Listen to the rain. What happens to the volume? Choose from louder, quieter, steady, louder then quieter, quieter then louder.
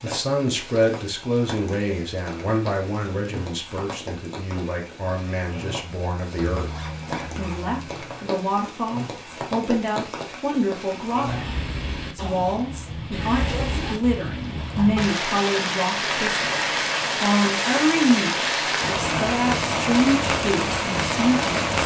louder.